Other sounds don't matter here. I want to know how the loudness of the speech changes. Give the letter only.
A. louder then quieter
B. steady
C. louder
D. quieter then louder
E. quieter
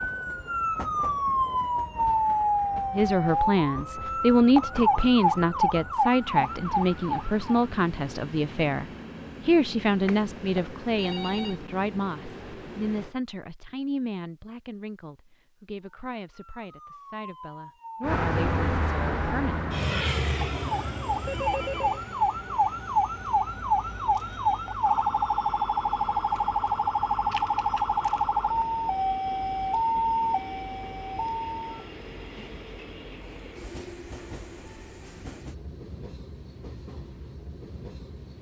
E.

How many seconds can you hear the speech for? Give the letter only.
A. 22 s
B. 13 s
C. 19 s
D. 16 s
D.